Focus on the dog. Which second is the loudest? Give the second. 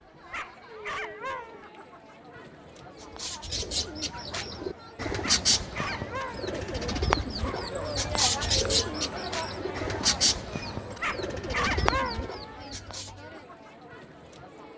12 s.